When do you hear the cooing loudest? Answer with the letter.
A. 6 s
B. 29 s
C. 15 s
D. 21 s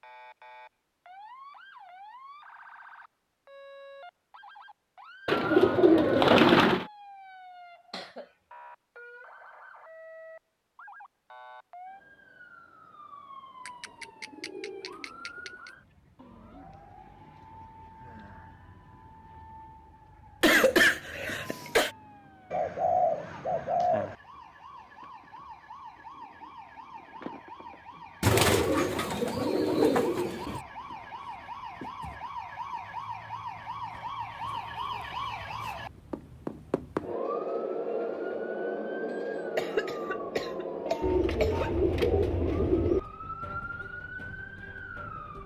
A.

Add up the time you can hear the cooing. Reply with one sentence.
The cooing can be heard for 10 seconds in total.